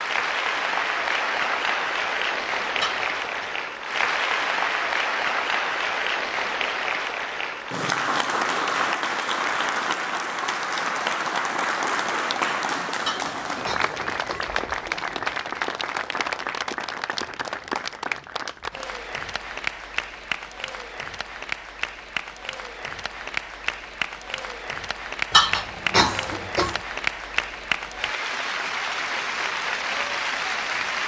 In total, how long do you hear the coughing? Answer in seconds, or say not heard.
4 s.